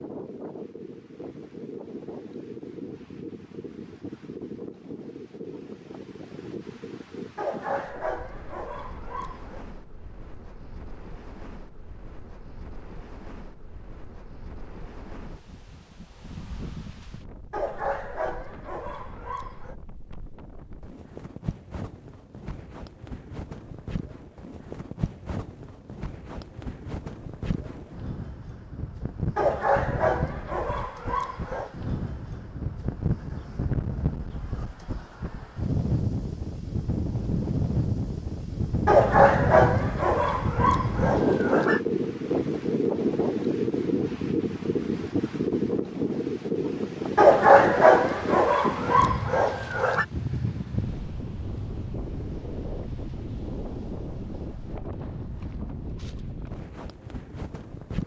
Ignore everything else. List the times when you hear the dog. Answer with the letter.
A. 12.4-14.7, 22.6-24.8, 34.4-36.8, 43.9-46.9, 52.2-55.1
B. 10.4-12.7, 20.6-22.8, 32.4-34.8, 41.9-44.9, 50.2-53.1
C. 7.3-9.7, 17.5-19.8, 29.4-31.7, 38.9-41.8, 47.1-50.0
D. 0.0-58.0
C.